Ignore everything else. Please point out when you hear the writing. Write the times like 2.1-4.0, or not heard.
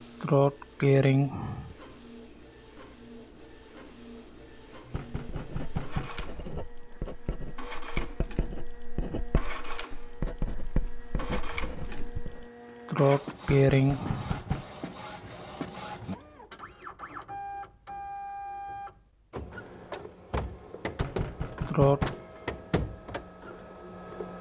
5.2-12.5.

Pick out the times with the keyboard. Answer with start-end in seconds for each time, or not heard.
not heard.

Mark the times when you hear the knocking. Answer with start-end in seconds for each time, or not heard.
4.9-6.2, 13.4-14.7, 20.9-22.2.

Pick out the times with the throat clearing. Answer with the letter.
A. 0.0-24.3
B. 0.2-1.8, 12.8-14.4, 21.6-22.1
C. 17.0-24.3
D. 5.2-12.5
B.